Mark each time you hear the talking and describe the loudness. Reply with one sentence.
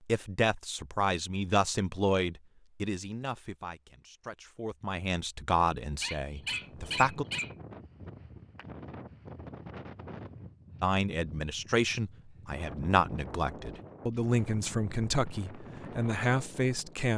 The talking can be heard from 0.1 to 7.2 s, getting quieter then louder; and from 10.8 to 17.1 s, at a steady volume.